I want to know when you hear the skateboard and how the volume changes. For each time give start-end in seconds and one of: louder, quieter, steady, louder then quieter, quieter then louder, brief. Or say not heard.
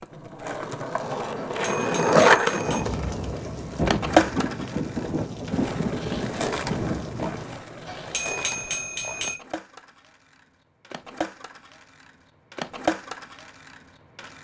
0.0-14.3 quieter then louder.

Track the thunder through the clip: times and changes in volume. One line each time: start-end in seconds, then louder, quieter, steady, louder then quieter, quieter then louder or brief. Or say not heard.
2.6-7.6 steady.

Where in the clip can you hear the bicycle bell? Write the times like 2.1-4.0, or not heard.
1.4-2.9, 7.8-9.4.